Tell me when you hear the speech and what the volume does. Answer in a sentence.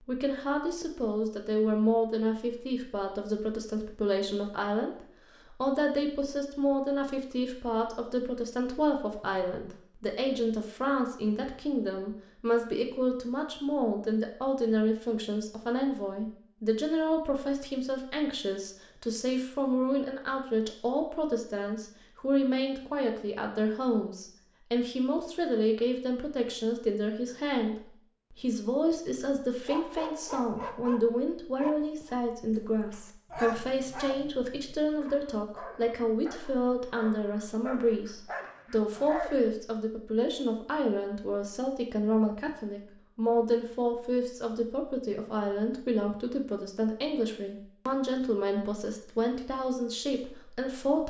You can hear the speech from 0.0 to 51.0 s, at a steady volume.